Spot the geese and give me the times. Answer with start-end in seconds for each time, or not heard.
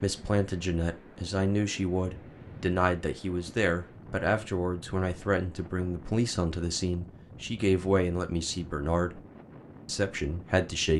not heard.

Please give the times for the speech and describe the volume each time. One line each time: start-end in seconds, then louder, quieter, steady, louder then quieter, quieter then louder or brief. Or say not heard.
0.0-9.2 steady
9.8-10.9 brief.